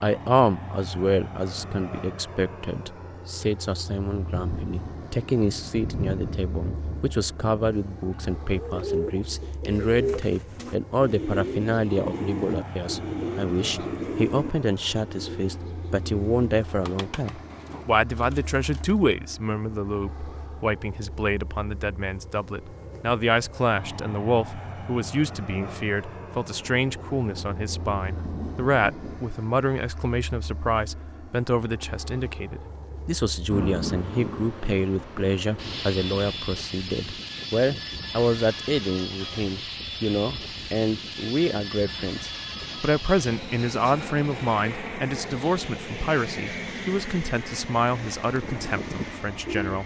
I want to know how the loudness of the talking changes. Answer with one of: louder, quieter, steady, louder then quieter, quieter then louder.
steady.